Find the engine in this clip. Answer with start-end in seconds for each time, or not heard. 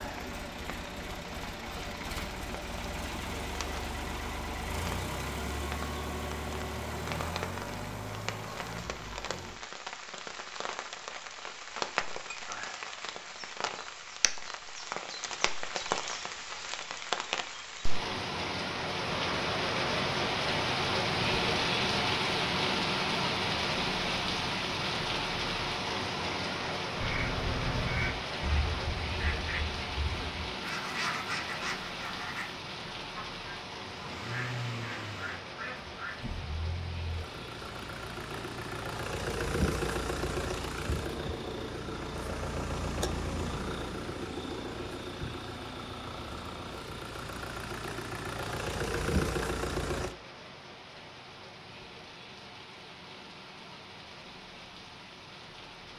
0.0-9.6, 33.9-50.1.